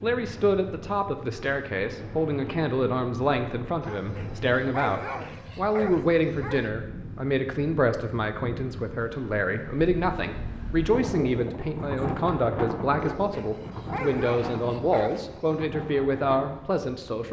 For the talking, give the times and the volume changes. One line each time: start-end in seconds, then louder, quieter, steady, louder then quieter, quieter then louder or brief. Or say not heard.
0.0-17.2 steady.